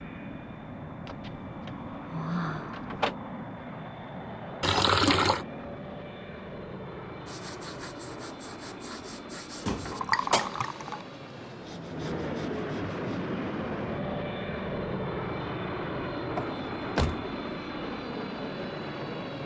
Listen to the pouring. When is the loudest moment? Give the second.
5 s.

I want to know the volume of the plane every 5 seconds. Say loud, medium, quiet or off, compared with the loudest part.
medium, medium, loud, loud.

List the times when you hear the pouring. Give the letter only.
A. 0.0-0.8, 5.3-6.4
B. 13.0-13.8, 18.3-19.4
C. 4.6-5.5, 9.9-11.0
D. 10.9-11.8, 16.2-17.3
C.